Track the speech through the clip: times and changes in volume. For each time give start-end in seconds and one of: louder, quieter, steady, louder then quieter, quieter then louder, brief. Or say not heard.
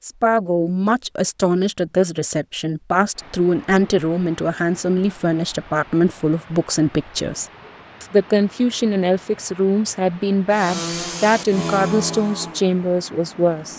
0.0-13.7 steady.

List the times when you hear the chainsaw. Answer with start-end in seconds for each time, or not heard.
10.5-13.7.